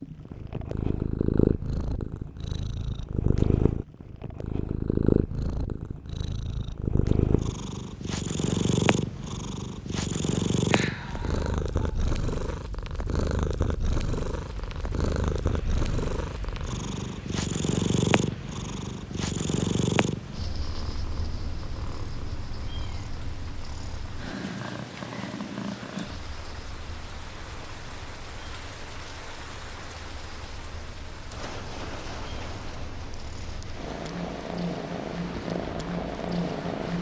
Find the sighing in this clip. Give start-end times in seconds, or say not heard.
10.7-12.6.